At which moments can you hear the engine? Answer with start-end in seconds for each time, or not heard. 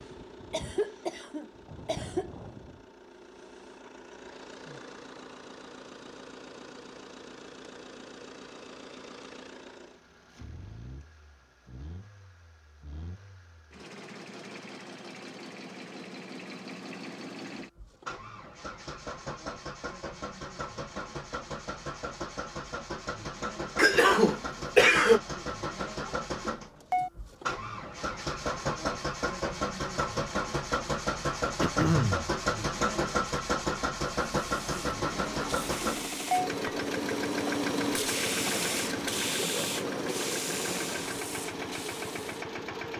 0.0-42.9.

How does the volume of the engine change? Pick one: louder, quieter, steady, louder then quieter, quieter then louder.
louder.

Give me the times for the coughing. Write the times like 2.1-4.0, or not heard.
0.5-2.3, 23.8-25.2, 31.6-32.3.